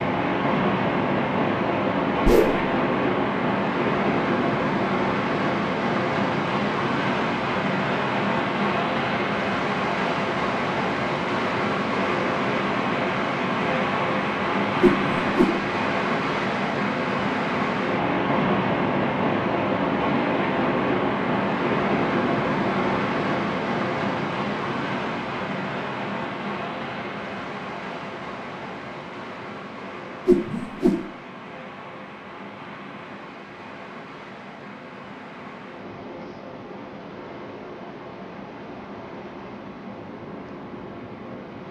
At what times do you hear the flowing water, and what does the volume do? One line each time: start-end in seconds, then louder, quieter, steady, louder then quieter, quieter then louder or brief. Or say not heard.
0.0-41.6 quieter.